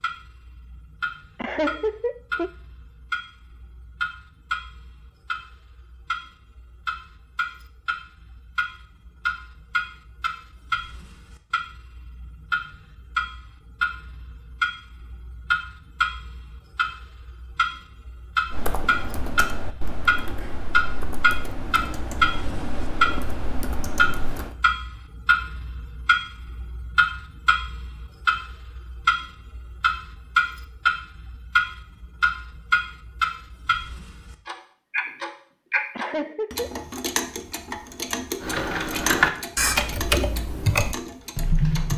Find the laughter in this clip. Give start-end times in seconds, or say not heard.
1.4-2.5, 36.0-36.8.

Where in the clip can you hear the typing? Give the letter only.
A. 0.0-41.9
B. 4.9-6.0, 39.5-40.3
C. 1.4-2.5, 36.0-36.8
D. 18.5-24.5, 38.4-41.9
D.